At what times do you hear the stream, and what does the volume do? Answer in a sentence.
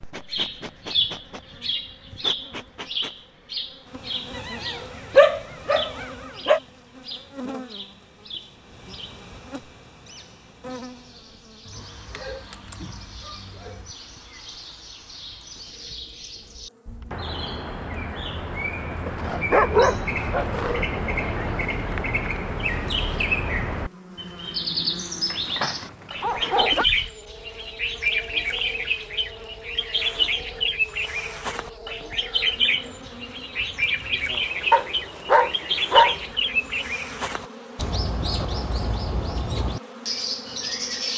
The stream can't be heard in this clip.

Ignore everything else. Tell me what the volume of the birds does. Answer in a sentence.
The volume of the birds goes down, then up.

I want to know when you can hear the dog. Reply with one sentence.
The dog can be heard from 4.3 to 6.6 s, from 11.7 to 13.9 s, from 19.1 to 20.9 s, from 25.3 to 26.9 s and from 34.7 to 36.1 s.